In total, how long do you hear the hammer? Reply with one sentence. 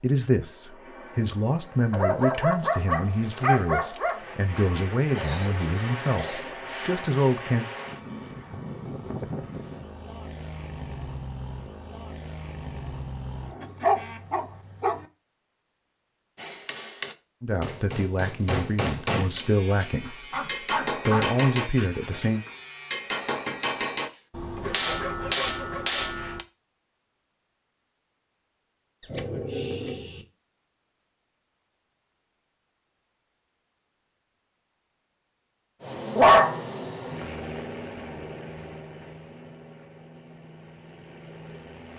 The hammer can be heard for 10 seconds in total.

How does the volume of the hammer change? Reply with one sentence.
The loudness of the hammer stays about the same.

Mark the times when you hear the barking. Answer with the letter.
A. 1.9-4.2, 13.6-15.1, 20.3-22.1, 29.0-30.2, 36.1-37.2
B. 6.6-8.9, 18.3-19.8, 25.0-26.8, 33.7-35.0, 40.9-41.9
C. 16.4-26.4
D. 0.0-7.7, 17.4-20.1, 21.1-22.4
A.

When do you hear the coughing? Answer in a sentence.
You can hear the coughing from 5.2 to 6.5 s.